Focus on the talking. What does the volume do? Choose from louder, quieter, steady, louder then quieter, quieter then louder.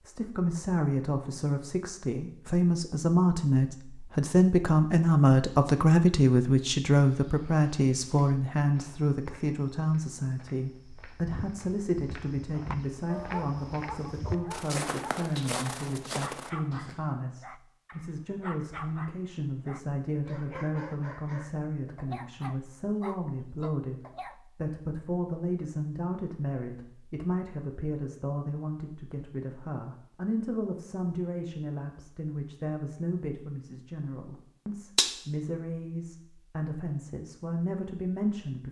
quieter.